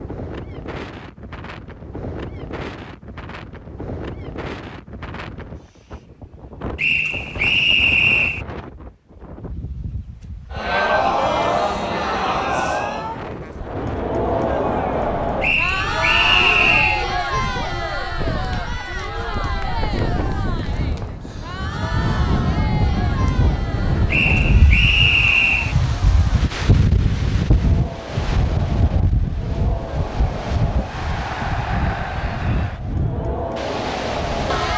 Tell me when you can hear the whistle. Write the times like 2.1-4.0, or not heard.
6.8-8.4, 15.4-17.1, 24.1-25.8.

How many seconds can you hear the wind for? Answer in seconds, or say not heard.
35 s.